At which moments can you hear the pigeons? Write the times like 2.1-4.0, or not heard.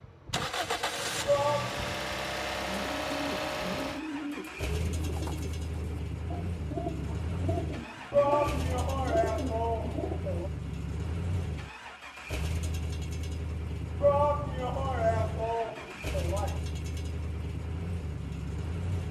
2.6-10.2.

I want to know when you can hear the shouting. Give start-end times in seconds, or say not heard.
1.2-1.9, 8.1-10.5, 14.0-16.6.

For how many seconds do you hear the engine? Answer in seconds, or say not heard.
19 s.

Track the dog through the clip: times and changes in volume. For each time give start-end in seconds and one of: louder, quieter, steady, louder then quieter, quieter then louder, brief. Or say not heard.
not heard.